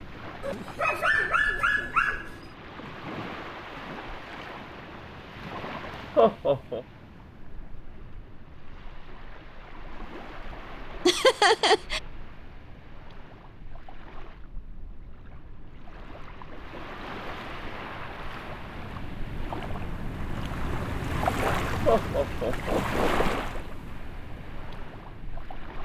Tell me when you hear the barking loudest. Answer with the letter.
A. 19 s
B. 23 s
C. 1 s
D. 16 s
C.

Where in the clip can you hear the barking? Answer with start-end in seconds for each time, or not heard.
0.4-2.5.